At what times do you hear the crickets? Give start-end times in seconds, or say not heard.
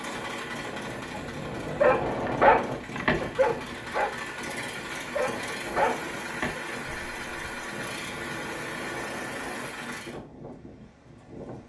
not heard.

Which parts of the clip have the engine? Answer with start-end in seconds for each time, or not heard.
0.0-10.2.